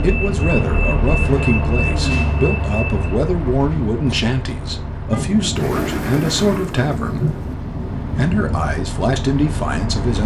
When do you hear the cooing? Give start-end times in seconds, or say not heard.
5.5-7.5.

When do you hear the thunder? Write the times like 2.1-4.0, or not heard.
5.1-8.7.